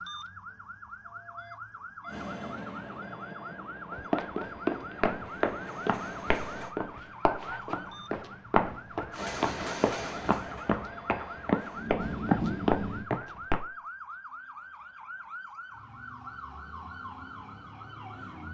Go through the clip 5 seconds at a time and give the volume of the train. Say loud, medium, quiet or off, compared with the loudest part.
medium, loud, loud, off.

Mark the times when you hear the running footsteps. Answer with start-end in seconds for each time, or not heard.
3.9-13.7.